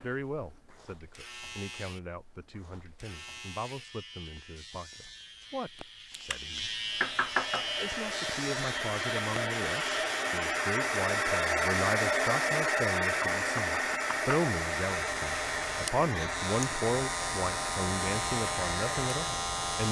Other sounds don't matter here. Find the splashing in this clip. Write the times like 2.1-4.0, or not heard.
not heard.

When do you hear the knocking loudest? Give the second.
7 s.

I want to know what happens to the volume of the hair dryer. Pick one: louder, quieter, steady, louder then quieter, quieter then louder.
louder then quieter.